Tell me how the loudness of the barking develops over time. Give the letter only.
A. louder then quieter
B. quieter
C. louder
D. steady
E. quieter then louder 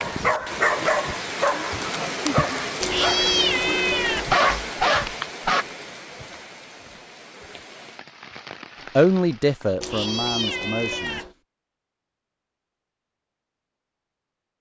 E.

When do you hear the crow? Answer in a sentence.
You can't hear the crow here.